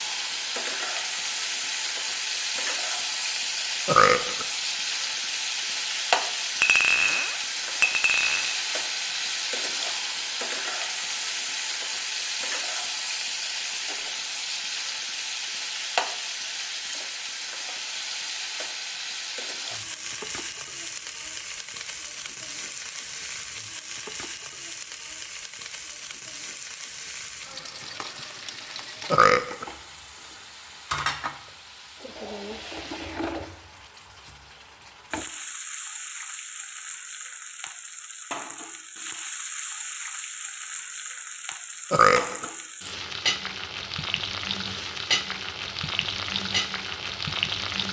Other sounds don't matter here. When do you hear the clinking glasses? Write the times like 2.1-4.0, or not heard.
6.6-8.6.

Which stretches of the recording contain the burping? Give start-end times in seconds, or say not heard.
3.9-4.5, 29.1-29.6, 41.9-42.5.